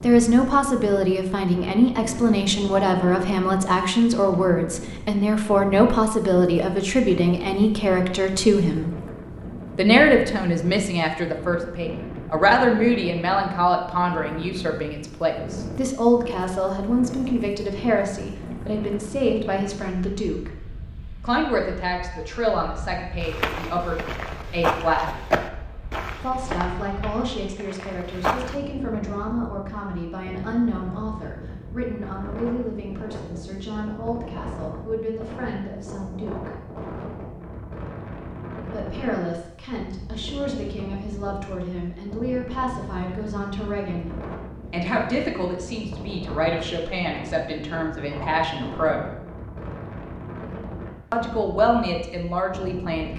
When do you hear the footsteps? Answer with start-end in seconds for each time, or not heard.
23.2-28.6.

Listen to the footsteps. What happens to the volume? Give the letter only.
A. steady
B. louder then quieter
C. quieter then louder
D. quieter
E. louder
B.